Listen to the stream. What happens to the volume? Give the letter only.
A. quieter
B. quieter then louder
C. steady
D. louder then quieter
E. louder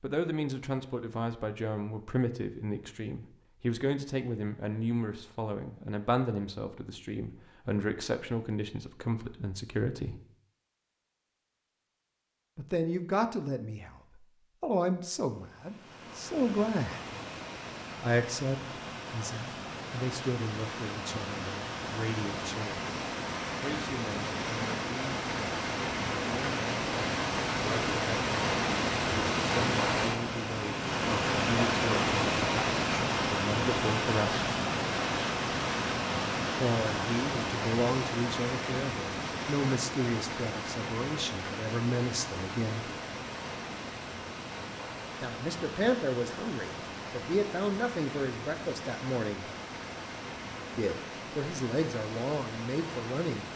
D.